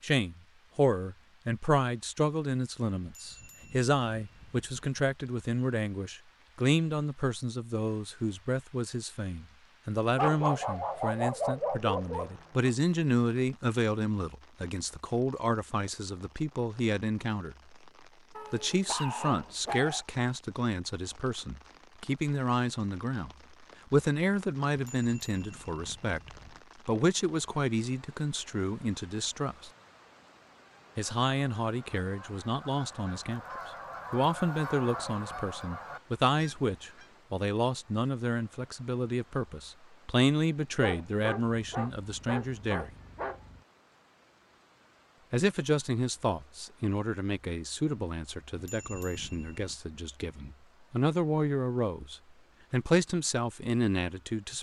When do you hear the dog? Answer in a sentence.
You can hear the dog from 10.2 to 12.7 s, from 18.4 to 20.1 s and from 40.8 to 43.6 s.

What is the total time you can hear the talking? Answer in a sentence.
The talking can be heard for 49 seconds in total.